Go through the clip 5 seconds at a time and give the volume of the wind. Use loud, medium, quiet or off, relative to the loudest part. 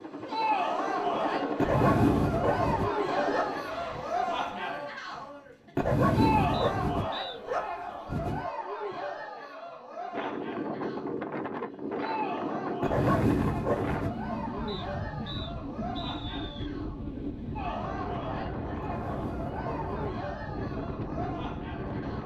off, off, loud, loud, loud.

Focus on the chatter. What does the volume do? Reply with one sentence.
The volume of the chatter goes down.